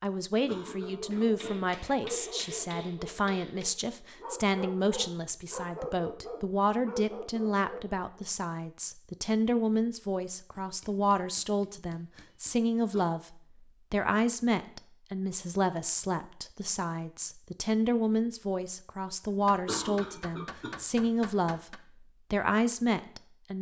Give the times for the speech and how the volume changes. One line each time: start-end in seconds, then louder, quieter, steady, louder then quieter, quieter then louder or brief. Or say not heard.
0.0-23.5 steady.